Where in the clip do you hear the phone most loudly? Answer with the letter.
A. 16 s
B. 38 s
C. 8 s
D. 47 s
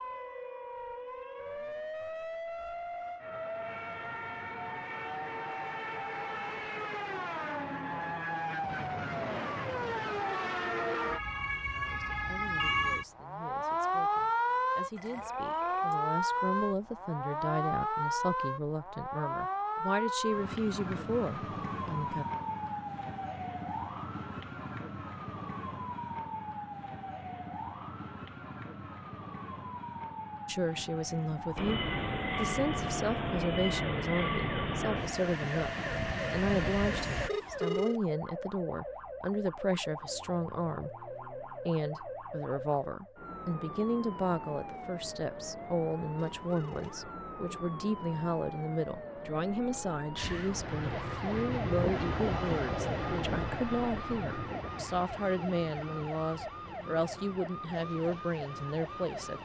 B.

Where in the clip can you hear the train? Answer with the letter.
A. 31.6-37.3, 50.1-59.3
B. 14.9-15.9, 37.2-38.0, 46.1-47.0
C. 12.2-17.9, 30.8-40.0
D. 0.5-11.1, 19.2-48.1
A.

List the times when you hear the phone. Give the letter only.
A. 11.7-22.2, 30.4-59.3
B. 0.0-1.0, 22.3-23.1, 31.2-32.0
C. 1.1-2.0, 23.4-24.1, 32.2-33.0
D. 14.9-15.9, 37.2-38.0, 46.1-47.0
D.